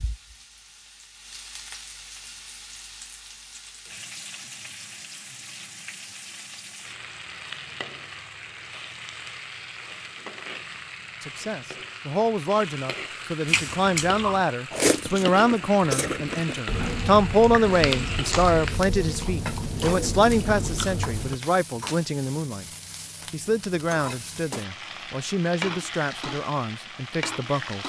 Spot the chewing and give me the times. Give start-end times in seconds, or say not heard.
13.4-21.4.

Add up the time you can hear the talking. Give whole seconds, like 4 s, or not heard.
16 s.